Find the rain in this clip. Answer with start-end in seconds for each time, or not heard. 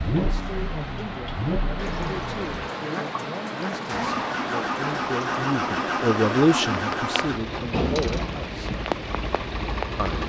0.0-10.2.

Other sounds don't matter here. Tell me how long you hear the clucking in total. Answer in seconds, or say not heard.
not heard.